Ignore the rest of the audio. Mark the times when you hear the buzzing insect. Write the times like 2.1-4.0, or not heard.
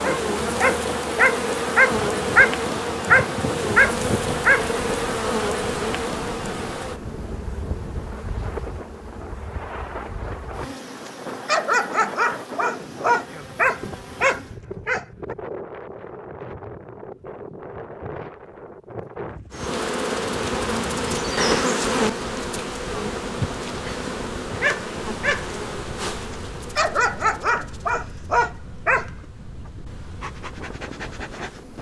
0.0-14.6, 19.5-31.7.